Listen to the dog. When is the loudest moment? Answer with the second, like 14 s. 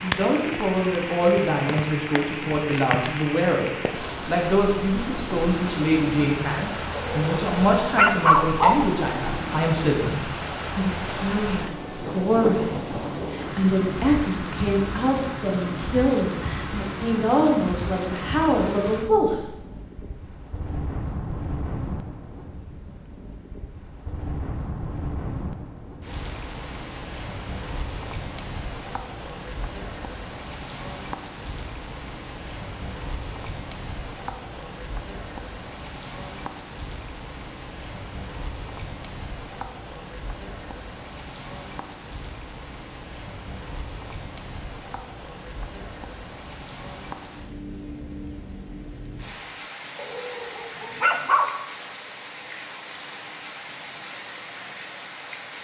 8 s.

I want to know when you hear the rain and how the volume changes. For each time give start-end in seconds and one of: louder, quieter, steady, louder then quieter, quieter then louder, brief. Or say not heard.
0.0-55.5 quieter.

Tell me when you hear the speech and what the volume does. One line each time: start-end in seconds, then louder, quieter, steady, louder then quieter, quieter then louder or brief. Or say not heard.
0.0-19.4 steady.